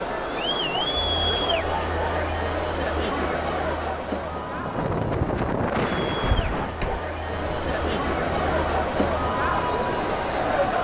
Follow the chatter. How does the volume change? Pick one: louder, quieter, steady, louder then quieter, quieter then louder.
quieter then louder.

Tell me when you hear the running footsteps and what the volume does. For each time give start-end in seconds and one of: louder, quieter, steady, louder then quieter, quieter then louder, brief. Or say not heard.
not heard.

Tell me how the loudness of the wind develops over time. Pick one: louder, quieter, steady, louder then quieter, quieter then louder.
quieter.